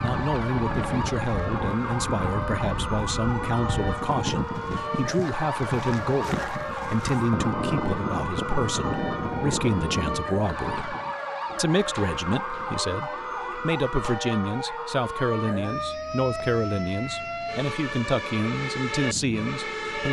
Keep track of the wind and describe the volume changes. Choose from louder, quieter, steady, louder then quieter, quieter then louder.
steady.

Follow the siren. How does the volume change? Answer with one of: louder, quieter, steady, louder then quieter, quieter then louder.
steady.